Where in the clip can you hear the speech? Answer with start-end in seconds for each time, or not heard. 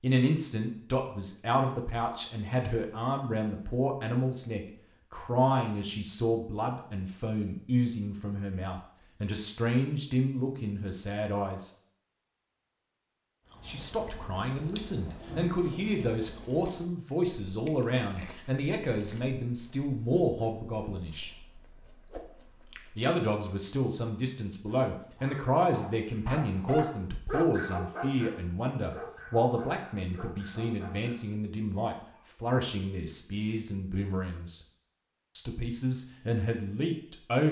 0.0-11.7, 13.7-21.3, 22.9-34.6, 35.4-37.4.